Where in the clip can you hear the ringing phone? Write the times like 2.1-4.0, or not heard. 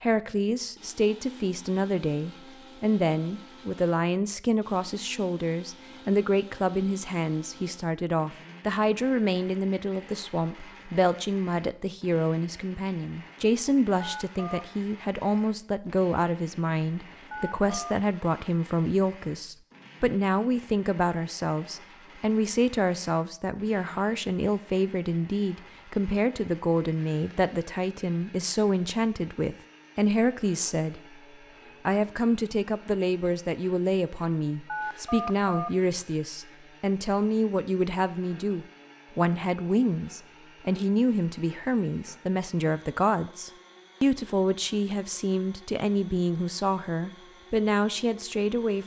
14.0-14.7, 17.3-17.9, 34.6-35.7.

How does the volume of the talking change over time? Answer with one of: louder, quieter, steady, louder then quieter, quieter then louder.
steady.